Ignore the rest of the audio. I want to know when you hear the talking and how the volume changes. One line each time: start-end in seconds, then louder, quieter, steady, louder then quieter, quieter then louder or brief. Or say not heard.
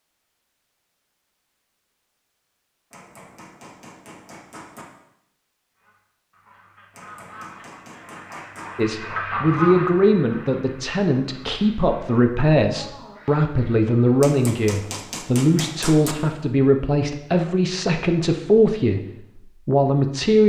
8.8-19.1 steady
19.6-20.4 brief.